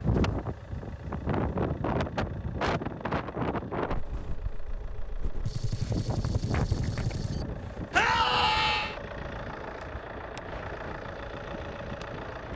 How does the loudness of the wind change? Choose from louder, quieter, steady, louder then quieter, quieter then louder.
quieter.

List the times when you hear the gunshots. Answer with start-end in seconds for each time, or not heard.
5.5-7.5.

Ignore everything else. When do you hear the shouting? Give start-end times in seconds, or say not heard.
7.9-8.9.